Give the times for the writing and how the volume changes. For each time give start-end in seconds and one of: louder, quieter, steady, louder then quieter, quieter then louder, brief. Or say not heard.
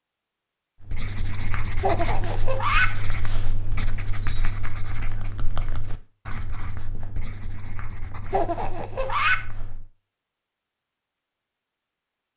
0.8-9.9 quieter.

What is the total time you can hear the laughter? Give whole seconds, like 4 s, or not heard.
2 s.